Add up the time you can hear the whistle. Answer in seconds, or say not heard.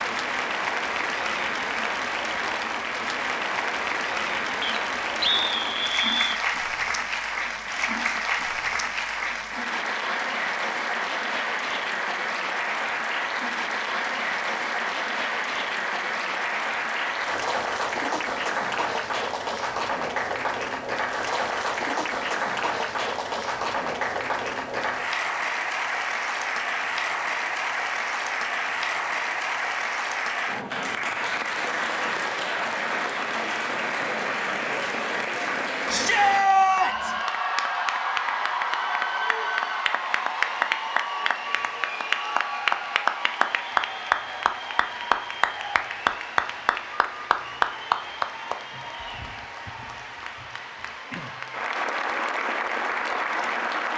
2 s.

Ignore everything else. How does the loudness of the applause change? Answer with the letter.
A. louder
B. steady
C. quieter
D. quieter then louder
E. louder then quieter
B.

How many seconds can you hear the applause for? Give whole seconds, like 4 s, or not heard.
54 s.